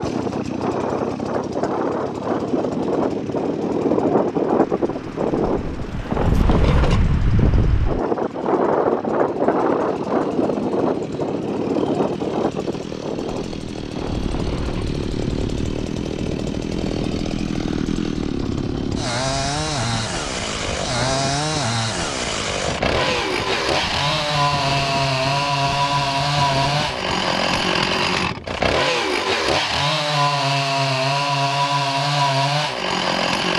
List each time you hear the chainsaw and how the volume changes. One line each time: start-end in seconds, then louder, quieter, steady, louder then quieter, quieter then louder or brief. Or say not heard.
0.0-33.5 louder.